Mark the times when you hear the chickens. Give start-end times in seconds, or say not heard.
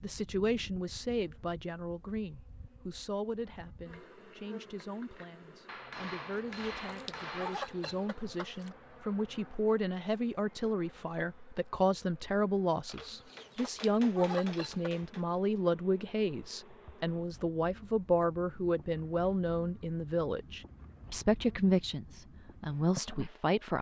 6.3-8.8, 13.1-14.9.